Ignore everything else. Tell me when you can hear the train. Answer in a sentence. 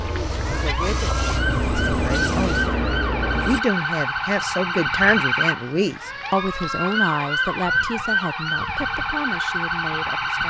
The train can be heard from 0.0 to 3.6 s.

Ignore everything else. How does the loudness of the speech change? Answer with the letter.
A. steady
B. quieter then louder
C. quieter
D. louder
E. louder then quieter
E.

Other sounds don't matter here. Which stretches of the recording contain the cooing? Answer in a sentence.
You can't hear the cooing here.